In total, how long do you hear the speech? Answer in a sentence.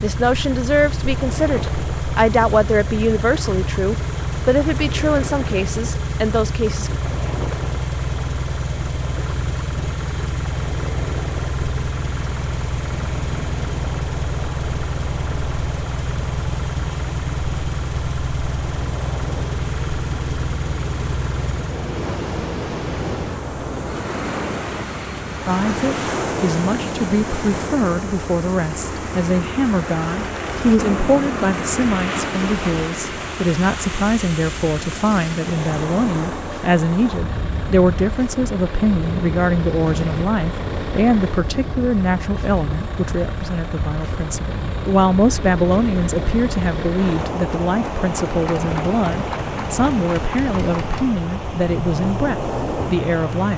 The speech can be heard for 35 seconds in total.